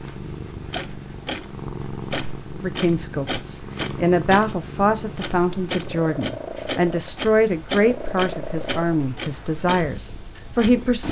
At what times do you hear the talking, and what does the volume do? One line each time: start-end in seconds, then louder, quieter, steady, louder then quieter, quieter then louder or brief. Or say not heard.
2.5-11.0 steady.